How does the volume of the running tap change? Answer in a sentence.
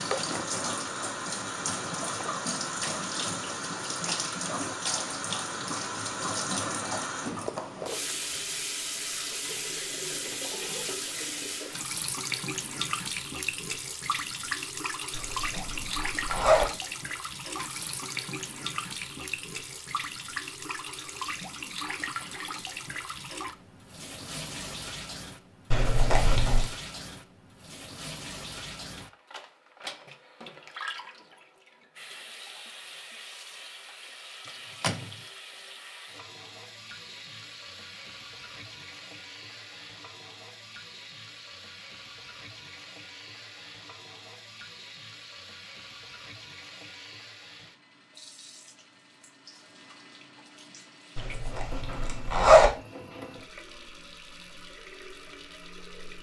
The volume of the running tap goes down.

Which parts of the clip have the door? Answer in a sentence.
The door can be heard from 34.5 to 35.2 s.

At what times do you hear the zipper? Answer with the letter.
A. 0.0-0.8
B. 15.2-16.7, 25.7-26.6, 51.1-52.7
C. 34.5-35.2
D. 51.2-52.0
B.